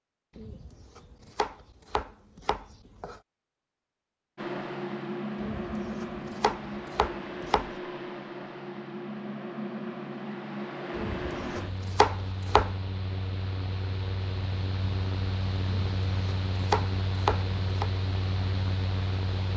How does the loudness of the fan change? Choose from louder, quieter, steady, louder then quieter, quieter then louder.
steady.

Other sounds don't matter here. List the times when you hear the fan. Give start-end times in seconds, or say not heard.
4.3-19.5.